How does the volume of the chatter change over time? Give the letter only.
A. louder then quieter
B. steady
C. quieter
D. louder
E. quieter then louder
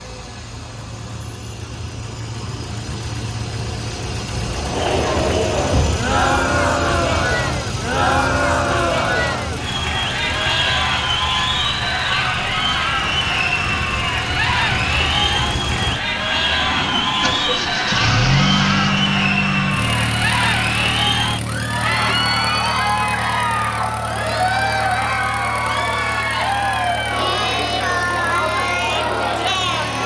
B.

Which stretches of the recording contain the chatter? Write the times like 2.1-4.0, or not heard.
4.5-30.0.